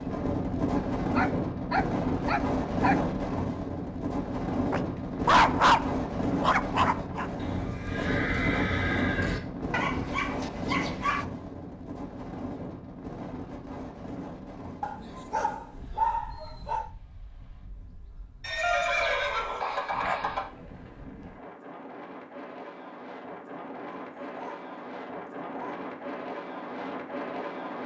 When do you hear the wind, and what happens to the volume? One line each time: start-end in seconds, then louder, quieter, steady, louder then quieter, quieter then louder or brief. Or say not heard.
0.0-27.8 quieter then louder.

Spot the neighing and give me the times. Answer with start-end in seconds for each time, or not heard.
7.3-9.4, 18.4-20.4.